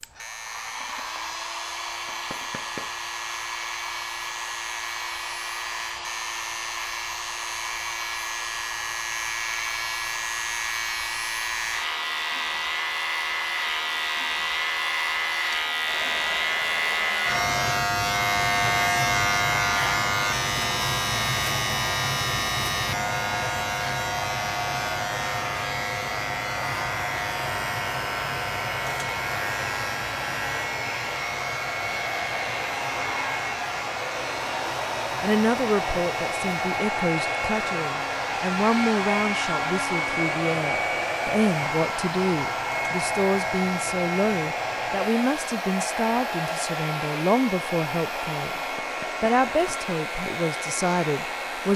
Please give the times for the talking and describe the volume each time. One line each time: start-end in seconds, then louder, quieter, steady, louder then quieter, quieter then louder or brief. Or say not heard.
35.2-48.6 steady
49.2-51.7 brief.